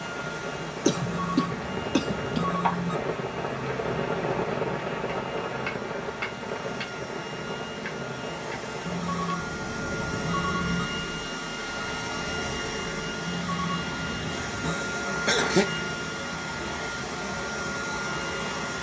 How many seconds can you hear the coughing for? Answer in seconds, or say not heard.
3 s.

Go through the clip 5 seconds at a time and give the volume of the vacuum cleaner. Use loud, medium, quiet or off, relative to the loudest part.
medium, medium, loud, loud.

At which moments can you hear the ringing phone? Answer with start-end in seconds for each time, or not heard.
0.9-3.0, 8.8-10.8, 13.2-14.8.